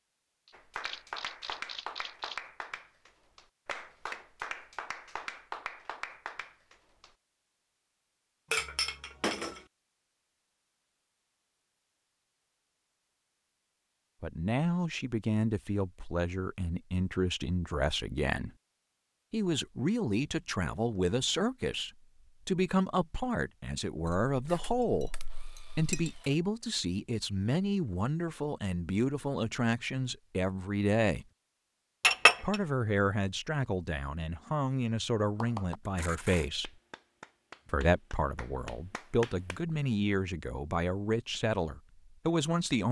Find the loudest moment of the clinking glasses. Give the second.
32 s.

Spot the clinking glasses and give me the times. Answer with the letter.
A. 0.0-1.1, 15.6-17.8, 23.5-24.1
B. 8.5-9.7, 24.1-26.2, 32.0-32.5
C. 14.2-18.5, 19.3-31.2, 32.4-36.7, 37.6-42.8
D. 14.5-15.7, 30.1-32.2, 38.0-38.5
B.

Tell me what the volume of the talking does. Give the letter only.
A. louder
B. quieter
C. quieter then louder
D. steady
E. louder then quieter
D.